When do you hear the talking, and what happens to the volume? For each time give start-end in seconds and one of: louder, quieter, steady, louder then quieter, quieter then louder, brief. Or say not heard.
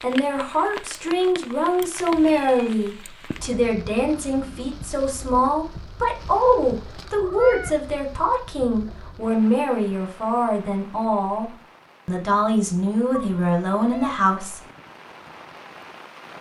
0.0-14.6 steady.